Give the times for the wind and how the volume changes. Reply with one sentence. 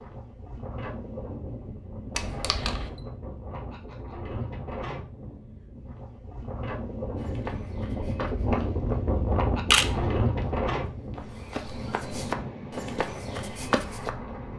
You can hear the wind from 0.0 to 14.5 s, getting louder then quieter.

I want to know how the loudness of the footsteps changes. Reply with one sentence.
The loudness of the footsteps goes up.